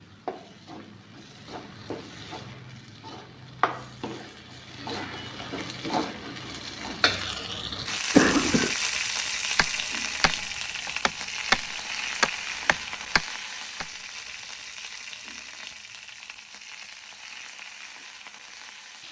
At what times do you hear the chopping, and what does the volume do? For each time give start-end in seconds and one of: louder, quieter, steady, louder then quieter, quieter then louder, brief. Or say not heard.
9.6-14.4 louder then quieter.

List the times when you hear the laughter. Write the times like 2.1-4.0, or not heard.
not heard.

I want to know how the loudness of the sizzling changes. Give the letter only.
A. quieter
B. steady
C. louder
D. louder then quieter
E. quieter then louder
D.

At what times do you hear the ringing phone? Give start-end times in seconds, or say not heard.
8.1-8.8.